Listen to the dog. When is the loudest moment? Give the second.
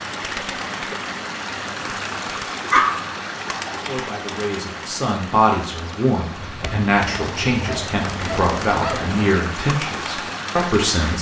3 s.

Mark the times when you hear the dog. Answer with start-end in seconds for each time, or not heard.
2.7-3.1, 6.3-9.3.